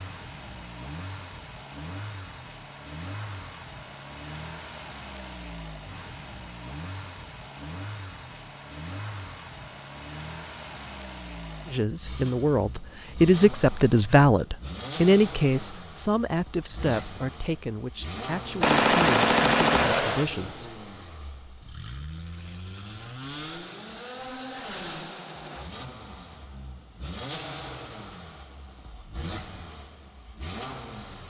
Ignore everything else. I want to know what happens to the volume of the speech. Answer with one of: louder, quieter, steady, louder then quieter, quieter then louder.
quieter.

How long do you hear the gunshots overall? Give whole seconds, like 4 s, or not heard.
2 s.